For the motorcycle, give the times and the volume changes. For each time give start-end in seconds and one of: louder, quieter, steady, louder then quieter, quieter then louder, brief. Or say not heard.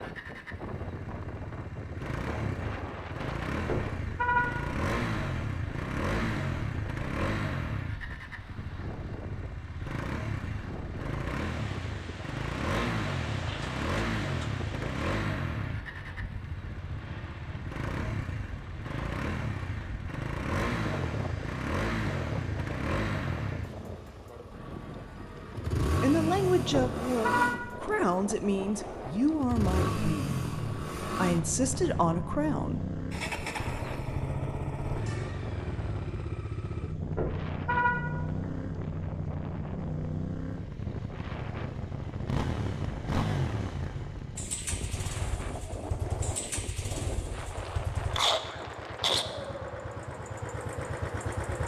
0.0-51.6 steady.